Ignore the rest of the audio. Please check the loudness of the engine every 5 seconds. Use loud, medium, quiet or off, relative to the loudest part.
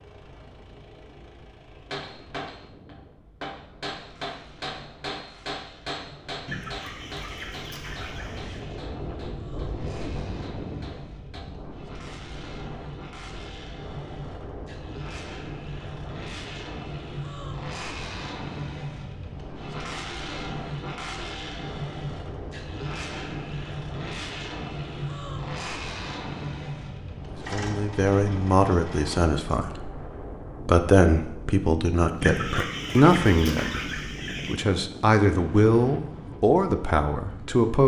quiet, quiet, medium, loud, loud, loud, off, off.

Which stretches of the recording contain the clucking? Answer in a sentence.
The clucking can be heard from 6.5 to 8.7 s and from 32.2 to 34.6 s.